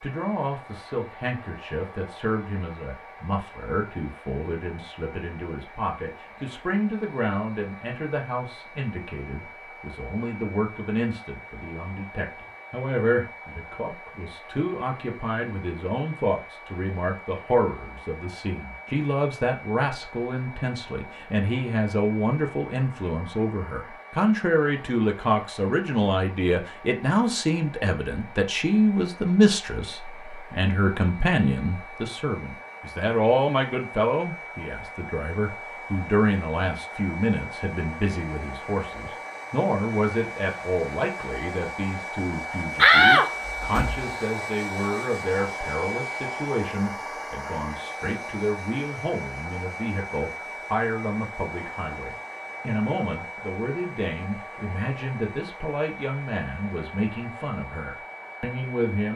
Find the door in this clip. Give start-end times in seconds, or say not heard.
42.8-44.0.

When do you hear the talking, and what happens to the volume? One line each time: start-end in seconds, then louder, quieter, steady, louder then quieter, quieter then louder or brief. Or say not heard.
0.0-59.1 louder then quieter.